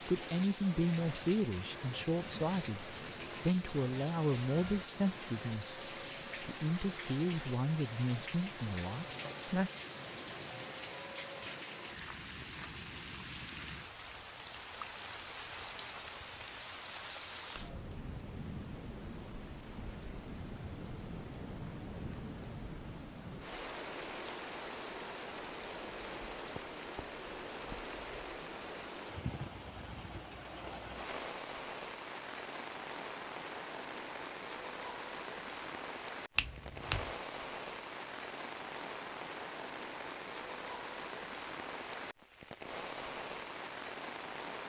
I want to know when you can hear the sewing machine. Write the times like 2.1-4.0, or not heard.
not heard.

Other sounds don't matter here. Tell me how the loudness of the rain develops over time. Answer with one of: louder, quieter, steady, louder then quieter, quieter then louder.
steady.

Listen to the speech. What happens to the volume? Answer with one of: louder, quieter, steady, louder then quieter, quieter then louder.
steady.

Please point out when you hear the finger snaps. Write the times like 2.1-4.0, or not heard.
36.4-37.1.